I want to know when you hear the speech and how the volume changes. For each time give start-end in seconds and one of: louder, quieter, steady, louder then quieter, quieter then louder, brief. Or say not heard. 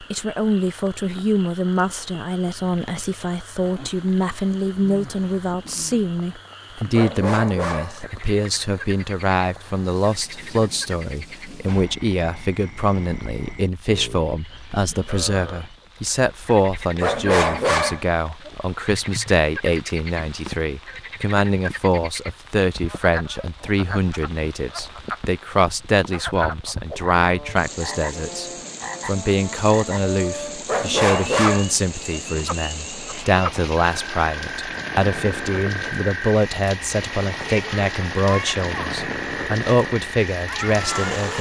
0.0-41.3 steady.